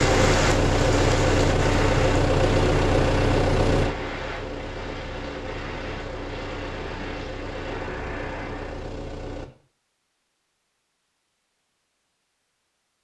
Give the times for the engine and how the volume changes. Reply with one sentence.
You can hear the engine from 0.0 to 9.5 s, getting quieter.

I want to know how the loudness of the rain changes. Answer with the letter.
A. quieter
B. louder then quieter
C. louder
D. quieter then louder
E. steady
A.